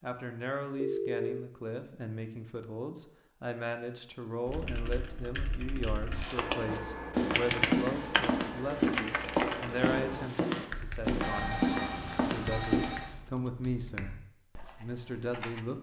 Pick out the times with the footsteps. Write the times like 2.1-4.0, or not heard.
6.2-13.2.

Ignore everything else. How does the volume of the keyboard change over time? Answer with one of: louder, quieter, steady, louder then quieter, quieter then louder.
louder then quieter.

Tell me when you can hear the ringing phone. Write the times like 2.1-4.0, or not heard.
0.8-1.5, 11.2-13.2.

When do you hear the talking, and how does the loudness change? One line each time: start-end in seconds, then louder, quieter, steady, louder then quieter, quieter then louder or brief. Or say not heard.
0.0-15.7 steady.